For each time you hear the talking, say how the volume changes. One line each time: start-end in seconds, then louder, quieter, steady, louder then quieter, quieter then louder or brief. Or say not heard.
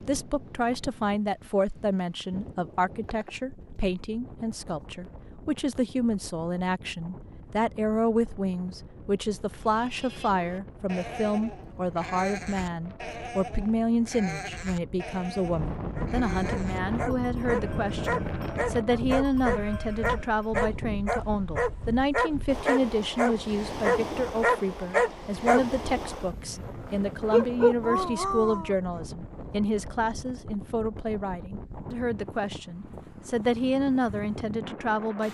0.0-35.2 steady.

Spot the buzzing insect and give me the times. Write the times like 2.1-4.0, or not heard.
not heard.